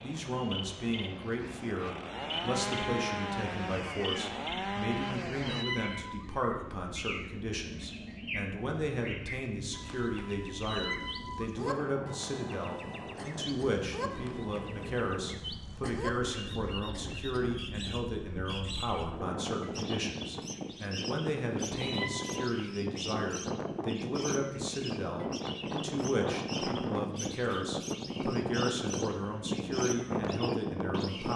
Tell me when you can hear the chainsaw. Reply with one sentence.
The chainsaw can be heard from 0.0 to 5.7 s.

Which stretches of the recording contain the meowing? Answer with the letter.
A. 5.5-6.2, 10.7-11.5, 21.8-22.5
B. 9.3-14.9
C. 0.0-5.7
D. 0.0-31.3
A.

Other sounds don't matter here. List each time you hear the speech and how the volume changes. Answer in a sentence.
The speech can be heard from 0.0 to 31.3 s, at a steady volume.